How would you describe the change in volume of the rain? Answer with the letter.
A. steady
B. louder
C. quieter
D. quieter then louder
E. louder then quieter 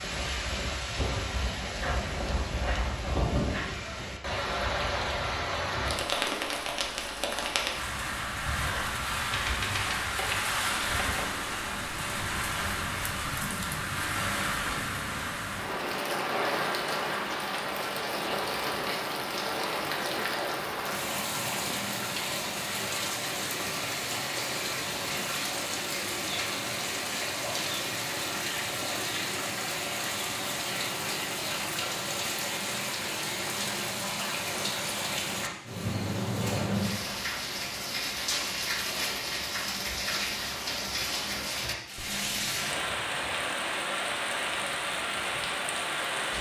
A.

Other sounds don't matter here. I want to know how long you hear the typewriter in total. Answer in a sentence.
You can hear the typewriter for 2 seconds altogether.